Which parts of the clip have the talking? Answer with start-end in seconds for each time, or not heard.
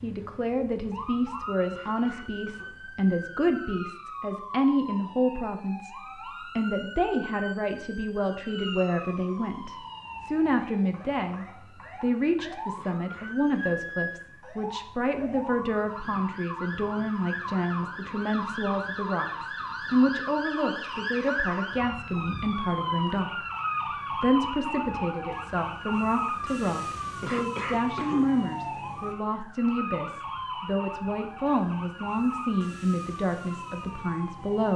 0.0-6.0, 6.5-23.4, 24.1-34.7.